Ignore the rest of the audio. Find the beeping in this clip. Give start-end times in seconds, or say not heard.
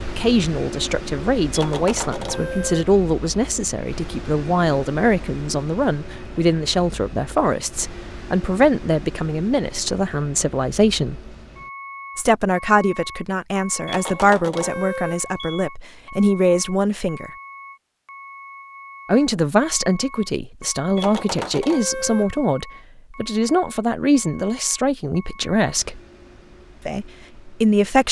1.6-2.9, 13.8-15.7, 20.9-22.3.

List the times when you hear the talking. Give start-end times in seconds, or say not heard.
0.0-11.3, 12.2-17.3, 19.1-26.0, 26.9-28.0.